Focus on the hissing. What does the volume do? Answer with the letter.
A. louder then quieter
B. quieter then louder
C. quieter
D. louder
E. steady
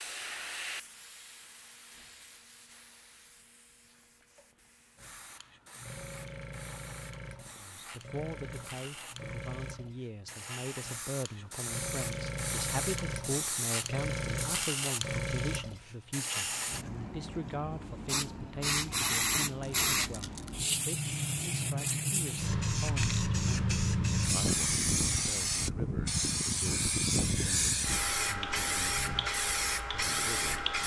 D.